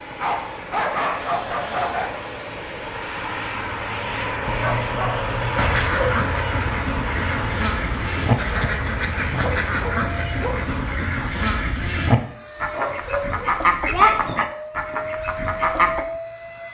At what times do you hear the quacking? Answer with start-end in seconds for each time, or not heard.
5.5-16.1.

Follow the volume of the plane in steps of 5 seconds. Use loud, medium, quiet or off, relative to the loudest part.
loud, loud, medium, loud.